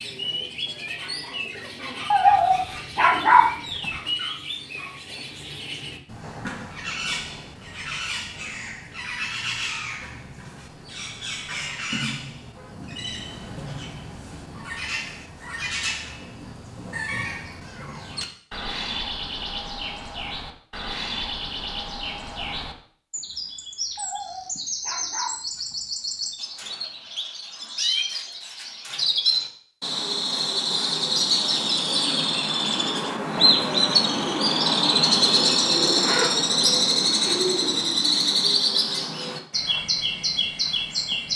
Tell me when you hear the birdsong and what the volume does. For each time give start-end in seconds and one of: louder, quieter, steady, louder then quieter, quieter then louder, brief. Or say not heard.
0.0-41.3 louder.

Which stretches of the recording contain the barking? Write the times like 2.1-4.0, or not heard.
2.1-3.9, 23.9-25.8.